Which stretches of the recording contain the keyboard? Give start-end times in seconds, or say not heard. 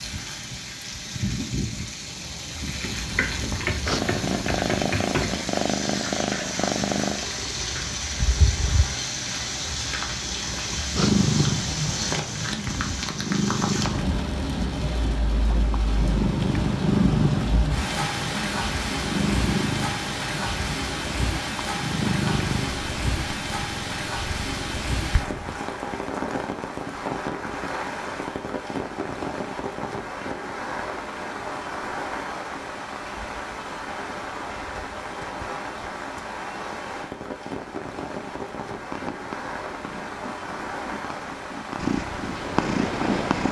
2.8-5.4.